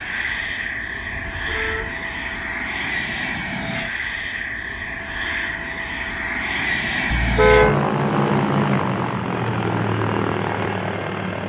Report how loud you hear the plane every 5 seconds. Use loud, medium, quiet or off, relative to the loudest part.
medium, loud, loud.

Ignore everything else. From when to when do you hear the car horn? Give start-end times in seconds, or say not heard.
1.1-2.0, 7.1-7.8.